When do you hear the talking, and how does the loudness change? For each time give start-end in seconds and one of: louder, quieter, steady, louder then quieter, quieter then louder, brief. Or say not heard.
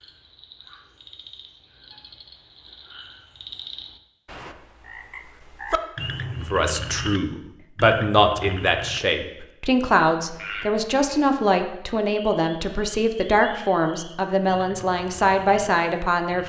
6.3-16.4 steady.